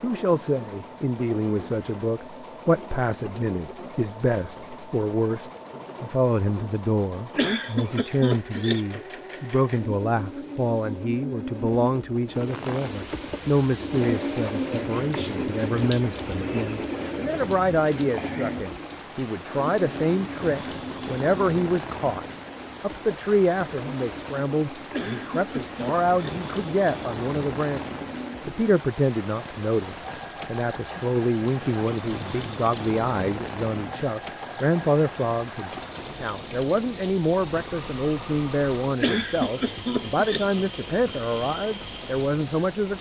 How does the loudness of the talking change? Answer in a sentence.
The loudness of the talking stays about the same.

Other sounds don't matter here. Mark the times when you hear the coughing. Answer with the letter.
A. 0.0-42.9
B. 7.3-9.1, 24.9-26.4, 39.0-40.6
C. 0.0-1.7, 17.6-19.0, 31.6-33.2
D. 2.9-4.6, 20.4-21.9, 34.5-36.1
B.